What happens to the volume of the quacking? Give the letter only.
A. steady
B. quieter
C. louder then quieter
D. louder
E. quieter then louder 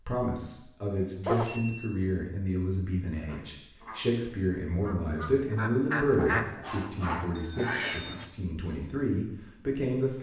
D.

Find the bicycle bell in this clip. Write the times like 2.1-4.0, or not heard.
0.9-1.9, 7.3-8.1.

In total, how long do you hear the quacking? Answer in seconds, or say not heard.
5 s.